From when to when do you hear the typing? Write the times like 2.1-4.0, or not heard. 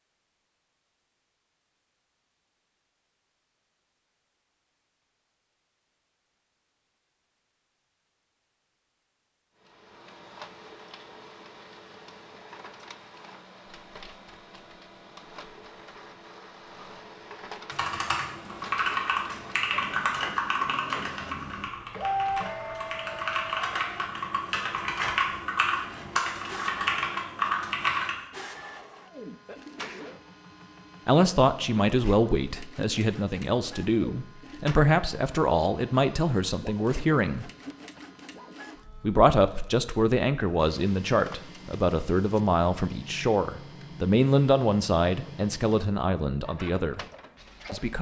17.7-28.1.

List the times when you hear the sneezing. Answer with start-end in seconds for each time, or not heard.
29.4-30.2.